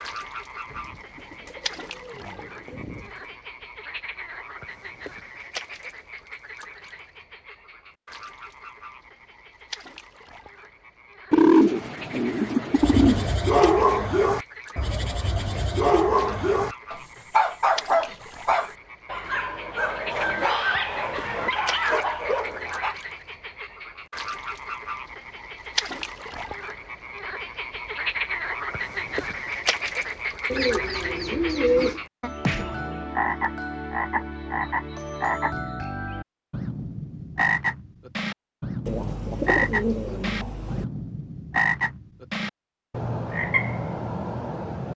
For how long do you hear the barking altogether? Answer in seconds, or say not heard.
10 s.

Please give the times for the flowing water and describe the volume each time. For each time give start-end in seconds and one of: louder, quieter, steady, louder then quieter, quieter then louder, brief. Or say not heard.
not heard.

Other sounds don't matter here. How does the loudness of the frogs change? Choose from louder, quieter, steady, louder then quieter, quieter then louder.
louder.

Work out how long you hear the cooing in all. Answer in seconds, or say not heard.
8 s.